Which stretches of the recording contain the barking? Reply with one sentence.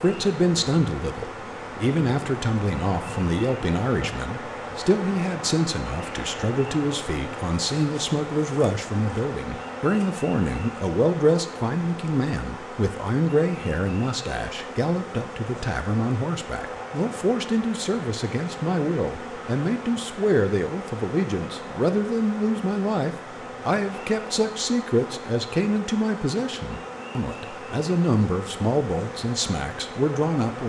You can't hear the barking here.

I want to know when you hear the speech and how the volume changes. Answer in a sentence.
The speech can be heard from 0.0 to 30.6 s, at a steady volume.